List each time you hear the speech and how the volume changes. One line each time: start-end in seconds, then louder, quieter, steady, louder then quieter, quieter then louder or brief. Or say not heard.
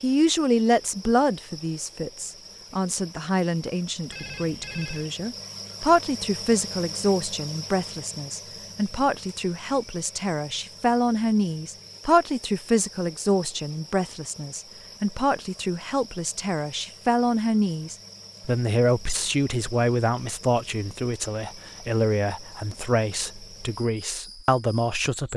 0.0-25.3 steady.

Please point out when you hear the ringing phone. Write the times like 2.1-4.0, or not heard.
4.1-5.1.